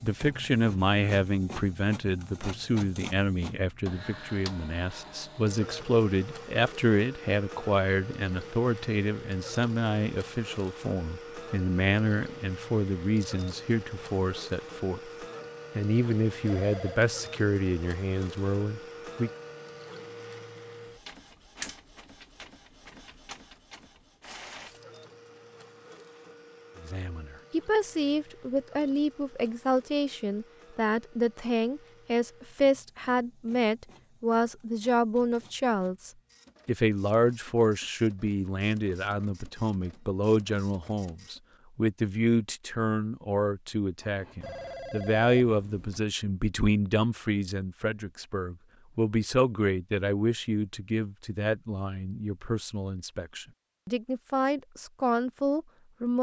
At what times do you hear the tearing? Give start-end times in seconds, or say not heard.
not heard.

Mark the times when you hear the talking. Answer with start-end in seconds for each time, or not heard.
0.0-15.0, 15.8-19.3, 26.8-56.1.